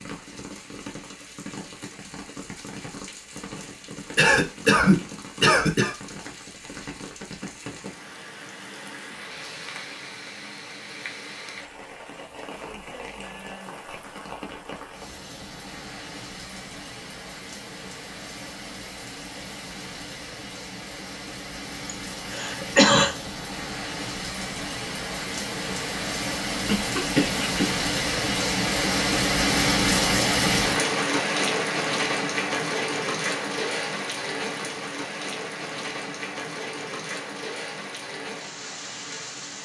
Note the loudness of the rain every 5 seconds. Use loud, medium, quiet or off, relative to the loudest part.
quiet, quiet, quiet, quiet, medium, loud, loud, medium.